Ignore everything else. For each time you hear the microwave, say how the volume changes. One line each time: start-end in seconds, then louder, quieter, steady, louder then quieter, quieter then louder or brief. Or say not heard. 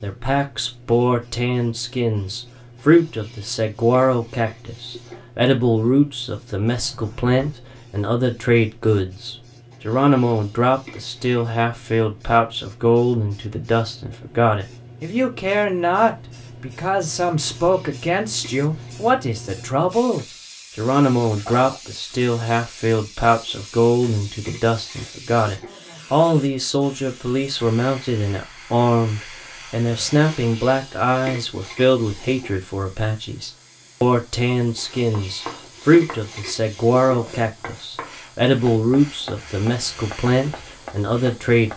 not heard.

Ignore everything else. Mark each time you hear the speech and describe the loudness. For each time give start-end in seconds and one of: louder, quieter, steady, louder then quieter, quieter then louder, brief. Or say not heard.
0.0-41.7 steady.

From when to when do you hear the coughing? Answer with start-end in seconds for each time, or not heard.
not heard.